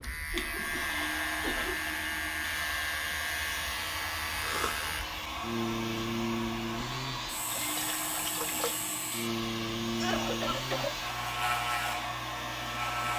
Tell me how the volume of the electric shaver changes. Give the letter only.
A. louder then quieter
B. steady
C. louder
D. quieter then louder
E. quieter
B.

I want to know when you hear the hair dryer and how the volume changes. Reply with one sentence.
The hair dryer can be heard from 0.0 to 13.1 s, at a steady volume.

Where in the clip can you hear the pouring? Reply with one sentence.
The pouring can be heard from 7.5 to 8.8 s.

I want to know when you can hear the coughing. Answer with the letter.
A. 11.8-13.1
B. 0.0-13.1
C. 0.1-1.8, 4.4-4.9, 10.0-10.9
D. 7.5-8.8
C.